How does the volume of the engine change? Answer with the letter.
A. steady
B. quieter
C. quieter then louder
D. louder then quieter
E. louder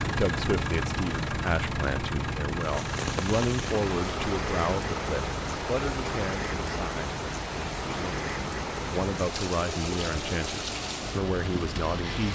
B.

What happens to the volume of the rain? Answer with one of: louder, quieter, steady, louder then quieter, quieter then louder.
steady.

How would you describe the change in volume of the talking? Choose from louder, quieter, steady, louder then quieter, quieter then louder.
steady.